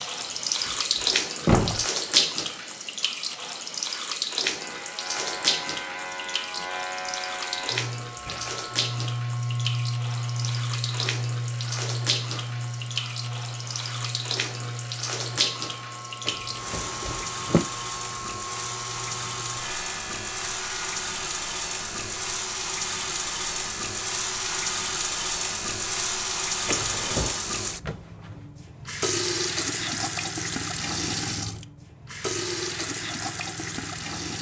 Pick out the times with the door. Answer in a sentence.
You can hear the door from 0.2 to 0.7 s, from 1.4 to 1.9 s, from 16.2 to 17.6 s and from 26.6 to 27.4 s.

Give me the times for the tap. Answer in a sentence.
You can hear the tap from 0.0 to 34.3 s.